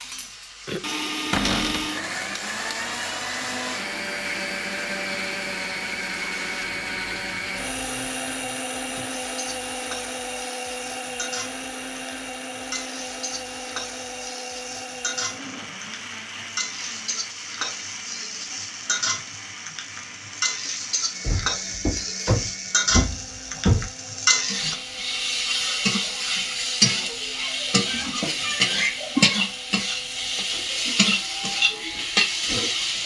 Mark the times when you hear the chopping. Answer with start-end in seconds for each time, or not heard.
not heard.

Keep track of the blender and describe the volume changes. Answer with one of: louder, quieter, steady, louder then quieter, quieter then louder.
quieter.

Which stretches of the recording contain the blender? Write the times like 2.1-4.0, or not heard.
0.0-33.0.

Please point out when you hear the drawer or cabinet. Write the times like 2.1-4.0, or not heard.
1.3-1.9, 21.2-23.9.